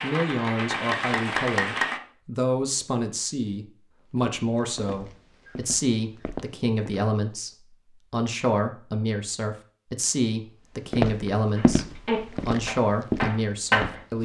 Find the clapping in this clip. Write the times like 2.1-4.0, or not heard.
0.0-2.0, 11.6-14.0.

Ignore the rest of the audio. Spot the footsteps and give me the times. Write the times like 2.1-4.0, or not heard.
4.2-7.0, 10.9-14.1.